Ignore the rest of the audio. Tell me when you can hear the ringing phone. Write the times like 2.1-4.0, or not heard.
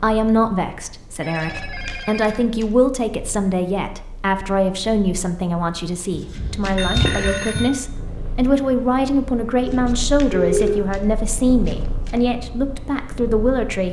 1.2-2.5, 6.8-7.8, 9.7-10.8.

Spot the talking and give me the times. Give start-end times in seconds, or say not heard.
0.0-13.8.